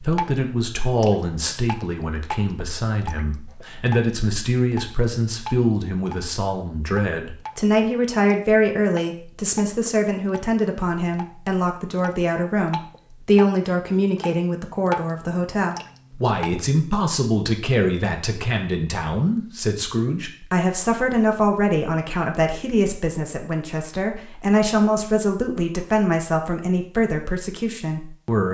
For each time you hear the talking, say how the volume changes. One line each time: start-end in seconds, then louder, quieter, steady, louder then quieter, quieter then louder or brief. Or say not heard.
0.0-28.4 steady.